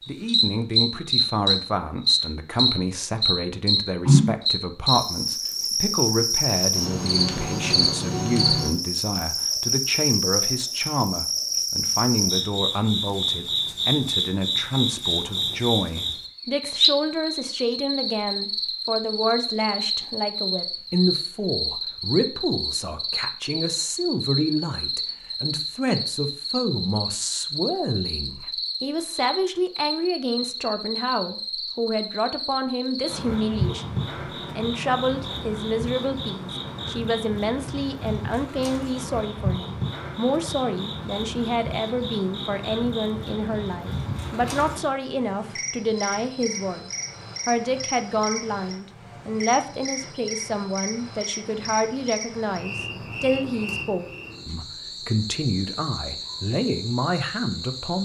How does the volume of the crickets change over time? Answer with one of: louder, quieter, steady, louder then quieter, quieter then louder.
quieter.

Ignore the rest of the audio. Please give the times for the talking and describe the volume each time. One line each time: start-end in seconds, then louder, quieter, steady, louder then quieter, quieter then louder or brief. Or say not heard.
0.1-58.0 steady.